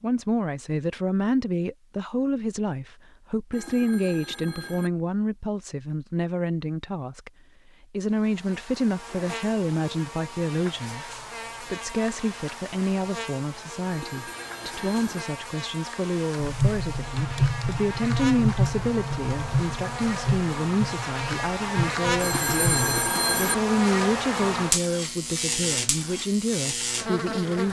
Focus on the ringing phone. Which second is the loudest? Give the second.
23 s.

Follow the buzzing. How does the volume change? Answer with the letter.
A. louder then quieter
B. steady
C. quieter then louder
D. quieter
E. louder
E.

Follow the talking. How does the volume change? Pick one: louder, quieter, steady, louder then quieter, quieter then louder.
steady.